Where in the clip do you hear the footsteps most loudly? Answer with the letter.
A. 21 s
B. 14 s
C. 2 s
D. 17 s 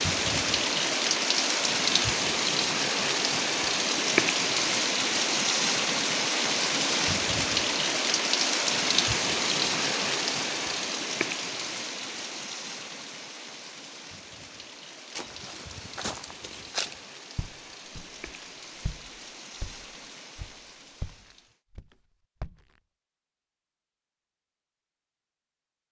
D.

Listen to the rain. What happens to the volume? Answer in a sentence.
The loudness of the rain goes down.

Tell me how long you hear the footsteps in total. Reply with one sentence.
You can hear the footsteps for 8 seconds altogether.